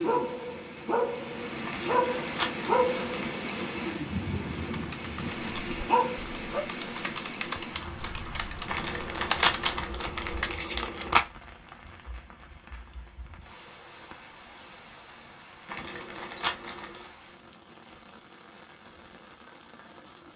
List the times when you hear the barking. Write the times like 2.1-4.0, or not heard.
0.0-6.6.